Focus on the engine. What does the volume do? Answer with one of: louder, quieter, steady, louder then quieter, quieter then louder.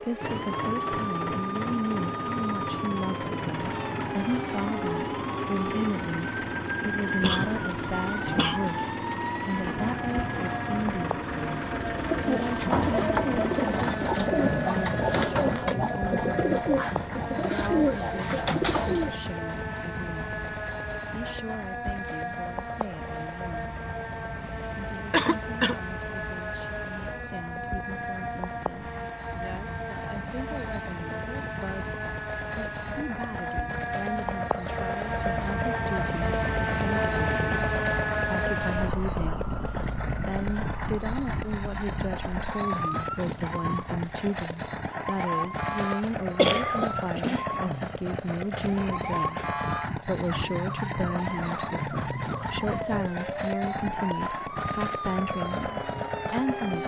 quieter then louder.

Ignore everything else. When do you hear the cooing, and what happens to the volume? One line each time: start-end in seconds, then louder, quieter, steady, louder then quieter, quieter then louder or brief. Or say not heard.
11.9-19.1 steady.